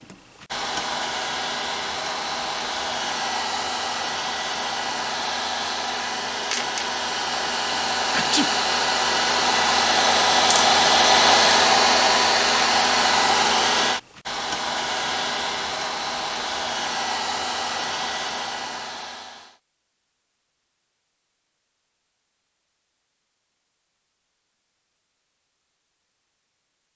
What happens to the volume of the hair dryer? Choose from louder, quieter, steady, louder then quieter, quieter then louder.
louder then quieter.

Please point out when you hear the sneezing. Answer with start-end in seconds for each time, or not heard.
8.1-8.6.